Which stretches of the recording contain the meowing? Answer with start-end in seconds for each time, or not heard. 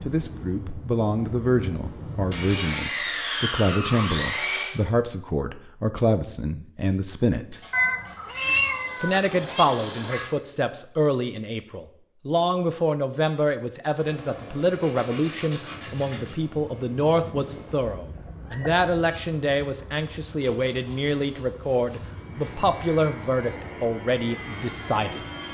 7.7-9.7, 17.9-19.2.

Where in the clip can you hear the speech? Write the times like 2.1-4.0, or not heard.
0.0-7.6, 9.0-25.2.